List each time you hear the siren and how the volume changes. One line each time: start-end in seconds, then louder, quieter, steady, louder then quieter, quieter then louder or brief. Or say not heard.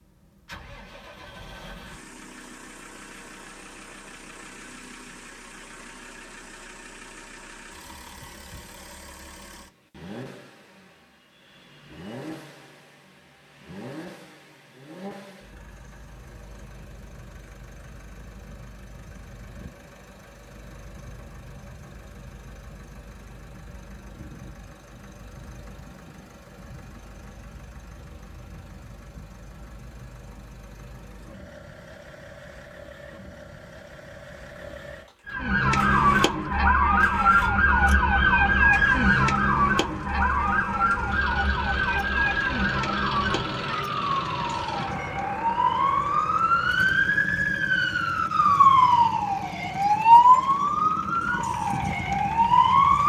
35.2-53.0 quieter then louder.